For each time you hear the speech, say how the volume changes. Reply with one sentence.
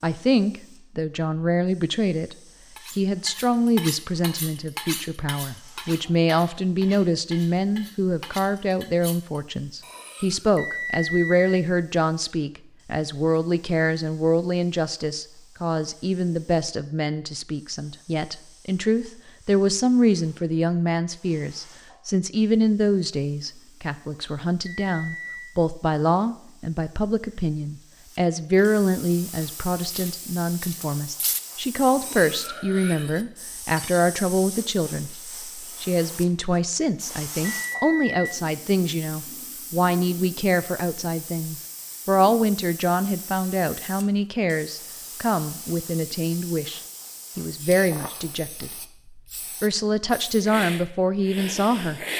The speech can be heard from 0.0 to 52.0 s, at a steady volume.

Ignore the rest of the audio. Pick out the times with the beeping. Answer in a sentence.
The beeping can be heard from 10.6 to 11.3 s, from 24.6 to 25.6 s and from 37.5 to 38.4 s.